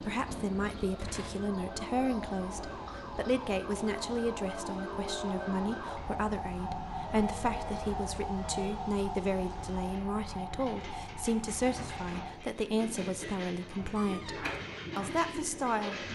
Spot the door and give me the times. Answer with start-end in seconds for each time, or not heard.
0.8-1.5, 13.9-14.6.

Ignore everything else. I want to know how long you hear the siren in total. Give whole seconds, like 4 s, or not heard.
12 s.